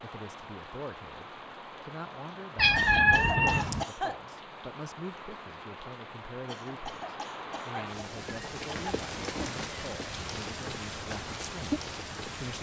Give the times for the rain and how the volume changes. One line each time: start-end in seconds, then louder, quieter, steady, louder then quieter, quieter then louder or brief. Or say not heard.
0.0-12.5 louder.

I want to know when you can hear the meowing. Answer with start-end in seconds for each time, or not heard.
2.5-3.9, 8.0-9.7.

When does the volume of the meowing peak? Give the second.
3 s.